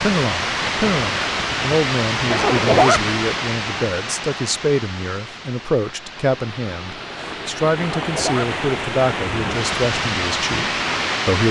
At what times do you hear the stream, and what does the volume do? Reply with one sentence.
The stream can be heard from 0.0 to 11.4 s, getting quieter then louder.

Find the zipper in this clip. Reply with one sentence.
The zipper can be heard from 2.2 to 3.0 s and from 7.8 to 8.5 s.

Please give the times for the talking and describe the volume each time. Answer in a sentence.
The talking can be heard from 0.0 to 11.4 s, at a steady volume.